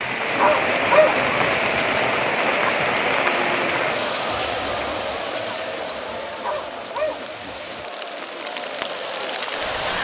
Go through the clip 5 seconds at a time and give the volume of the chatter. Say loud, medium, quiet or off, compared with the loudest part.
loud, medium.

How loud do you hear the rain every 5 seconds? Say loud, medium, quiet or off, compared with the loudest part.
loud, medium.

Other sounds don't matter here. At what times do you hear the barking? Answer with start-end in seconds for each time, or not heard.
0.3-1.8, 6.4-7.8.